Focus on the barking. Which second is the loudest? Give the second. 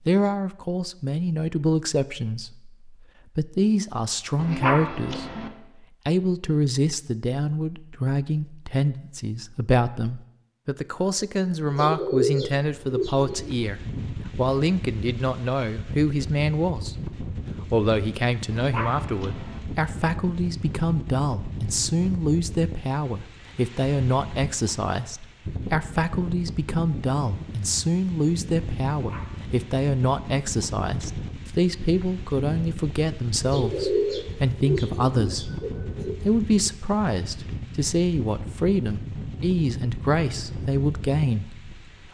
5 s.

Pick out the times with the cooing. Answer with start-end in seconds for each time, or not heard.
11.7-13.6, 33.4-36.1.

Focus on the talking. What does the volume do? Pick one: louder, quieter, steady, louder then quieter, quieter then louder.
steady.